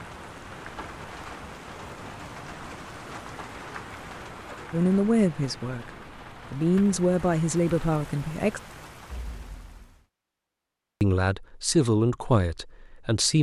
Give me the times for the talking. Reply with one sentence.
You can hear the talking from 4.7 to 5.9 s, from 6.5 to 8.6 s and from 11.0 to 13.3 s.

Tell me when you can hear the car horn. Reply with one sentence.
You can't hear the car horn here.